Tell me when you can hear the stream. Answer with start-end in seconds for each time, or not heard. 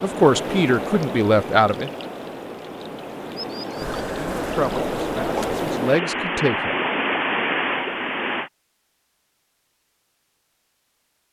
0.0-8.5.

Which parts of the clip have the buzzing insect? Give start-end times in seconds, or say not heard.
3.8-5.7.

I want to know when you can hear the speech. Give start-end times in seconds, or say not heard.
0.0-1.9, 4.3-6.8.